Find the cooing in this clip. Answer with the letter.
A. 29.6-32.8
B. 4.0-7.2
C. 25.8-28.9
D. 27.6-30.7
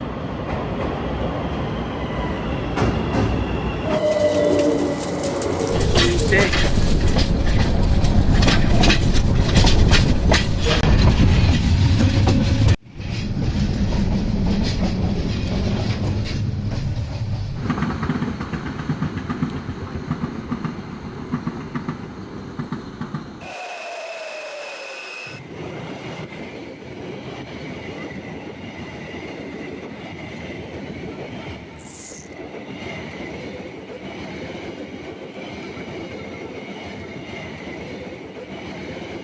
B.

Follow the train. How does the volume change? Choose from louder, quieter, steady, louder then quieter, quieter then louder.
quieter.